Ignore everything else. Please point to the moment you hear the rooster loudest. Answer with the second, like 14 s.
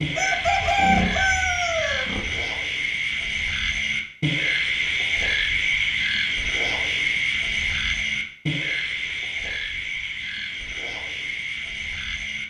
1 s.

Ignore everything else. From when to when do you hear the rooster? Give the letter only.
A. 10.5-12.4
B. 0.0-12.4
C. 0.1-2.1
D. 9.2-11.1
C.